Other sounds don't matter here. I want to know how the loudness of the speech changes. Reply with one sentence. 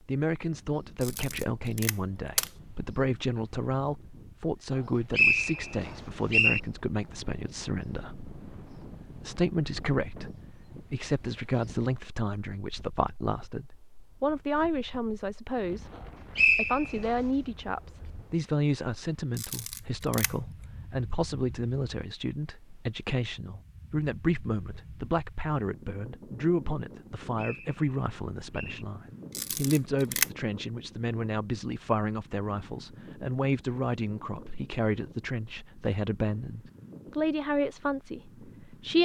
The volume of the speech stays about the same.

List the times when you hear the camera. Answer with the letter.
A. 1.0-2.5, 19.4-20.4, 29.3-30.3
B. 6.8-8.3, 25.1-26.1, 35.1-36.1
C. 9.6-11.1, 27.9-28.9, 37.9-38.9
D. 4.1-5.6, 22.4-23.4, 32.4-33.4
A.